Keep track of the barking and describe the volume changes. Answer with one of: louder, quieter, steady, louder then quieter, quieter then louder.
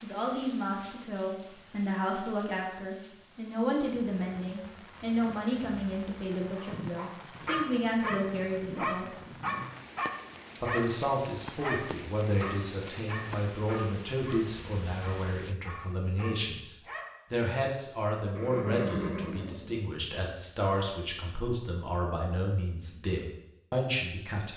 quieter.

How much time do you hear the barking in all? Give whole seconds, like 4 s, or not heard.
11 s.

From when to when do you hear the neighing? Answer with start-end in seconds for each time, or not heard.
18.4-19.9.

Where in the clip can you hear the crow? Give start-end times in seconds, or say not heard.
not heard.